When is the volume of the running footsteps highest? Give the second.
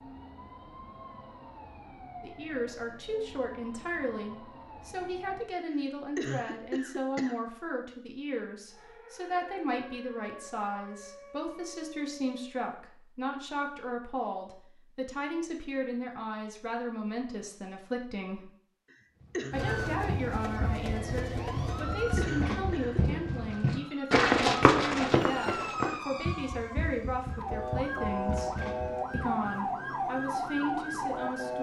25 s.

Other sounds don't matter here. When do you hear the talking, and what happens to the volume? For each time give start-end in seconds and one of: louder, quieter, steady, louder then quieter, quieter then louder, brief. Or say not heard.
2.2-18.5 steady
19.5-31.5 steady.